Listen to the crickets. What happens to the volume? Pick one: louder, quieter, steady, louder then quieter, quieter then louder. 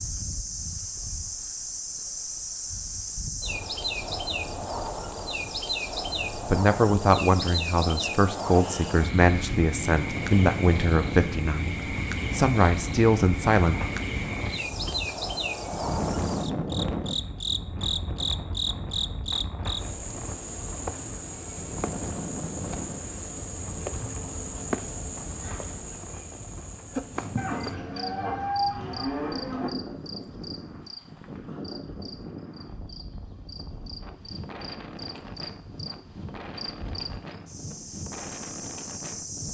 quieter.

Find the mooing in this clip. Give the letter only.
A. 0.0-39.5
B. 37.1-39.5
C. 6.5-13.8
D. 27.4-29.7
D.